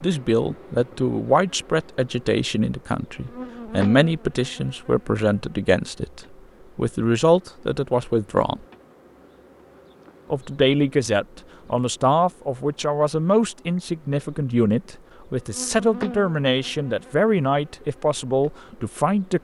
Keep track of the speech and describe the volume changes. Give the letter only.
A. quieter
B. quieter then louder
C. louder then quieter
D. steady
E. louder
D.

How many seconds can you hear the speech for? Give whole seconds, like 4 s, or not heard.
18 s.